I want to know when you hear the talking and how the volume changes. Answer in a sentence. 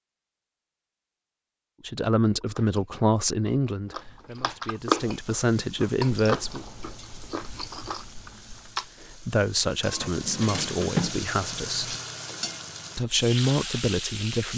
The talking can be heard from 1.8 to 6.7 s, getting quieter then louder; briefly from 9.0 to 11.9 s; and briefly from 12.9 to 14.5 s.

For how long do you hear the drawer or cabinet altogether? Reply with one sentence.
You can hear the drawer or cabinet for 2 seconds altogether.